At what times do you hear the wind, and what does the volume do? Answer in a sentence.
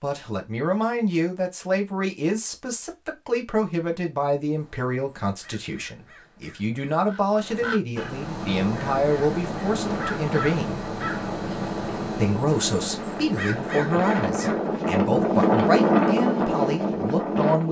You can hear the wind from 8.3 to 17.6 s, getting louder.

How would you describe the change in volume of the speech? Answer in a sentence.
The loudness of the speech stays about the same.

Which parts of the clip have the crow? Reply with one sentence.
The crow can be heard from 4.5 to 14.7 s.